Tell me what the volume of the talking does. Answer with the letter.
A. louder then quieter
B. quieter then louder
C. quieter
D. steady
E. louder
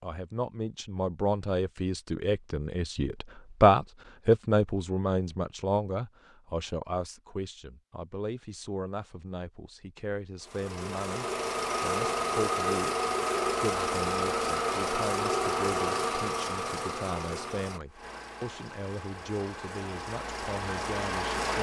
C.